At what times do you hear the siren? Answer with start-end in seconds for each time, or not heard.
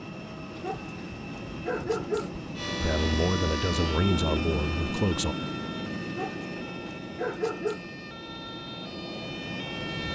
2.5-10.1.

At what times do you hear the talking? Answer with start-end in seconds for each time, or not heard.
2.8-5.3.